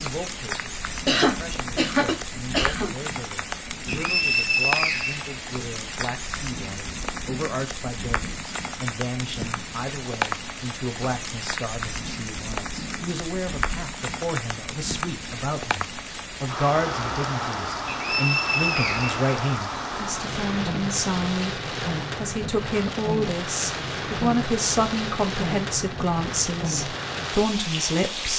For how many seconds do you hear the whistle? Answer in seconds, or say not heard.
3 s.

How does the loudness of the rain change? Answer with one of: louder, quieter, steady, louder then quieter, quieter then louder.
steady.